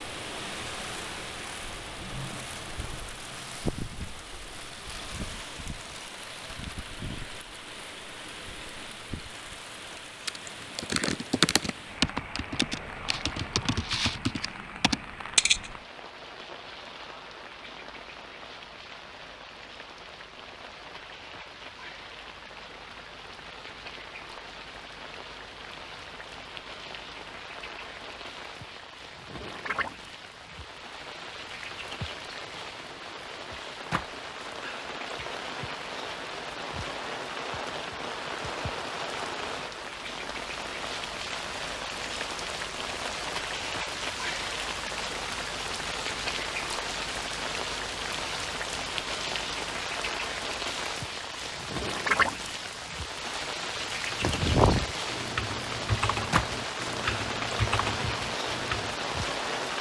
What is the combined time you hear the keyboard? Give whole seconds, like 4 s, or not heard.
10 s.